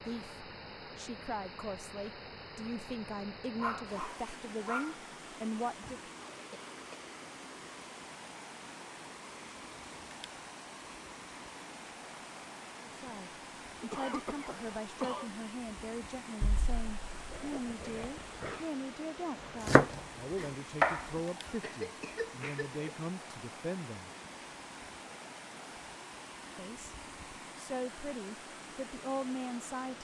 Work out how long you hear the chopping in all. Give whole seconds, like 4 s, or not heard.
2 s.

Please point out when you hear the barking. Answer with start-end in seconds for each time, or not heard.
3.6-5.0, 16.4-18.6.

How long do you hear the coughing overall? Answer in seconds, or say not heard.
4 s.